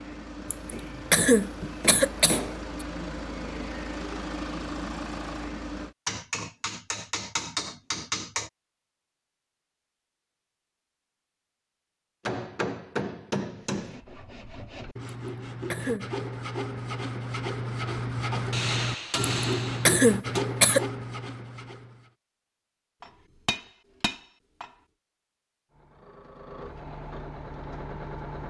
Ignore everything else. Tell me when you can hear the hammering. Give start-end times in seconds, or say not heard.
0.1-2.7, 6.0-8.5, 12.2-14.0, 18.5-20.4, 23.0-24.7.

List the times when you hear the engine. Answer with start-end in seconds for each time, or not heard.
0.0-6.0, 25.7-28.4.